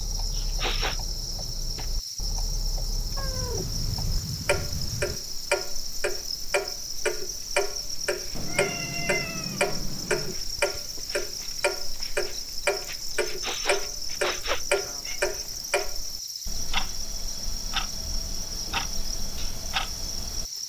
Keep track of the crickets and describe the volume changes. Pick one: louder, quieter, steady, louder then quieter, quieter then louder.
steady.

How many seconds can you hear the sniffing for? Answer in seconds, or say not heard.
2 s.